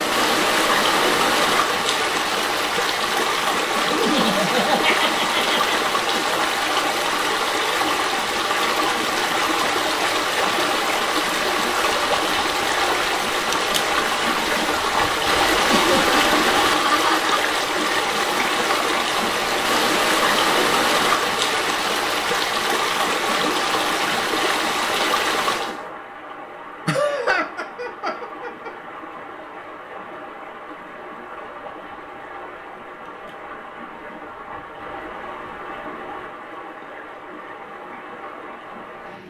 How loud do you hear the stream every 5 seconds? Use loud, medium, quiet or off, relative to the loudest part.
loud, loud, loud, loud, loud, medium, quiet, quiet.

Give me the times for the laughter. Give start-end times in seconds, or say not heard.
4.0-5.8, 15.7-17.4, 26.9-28.7.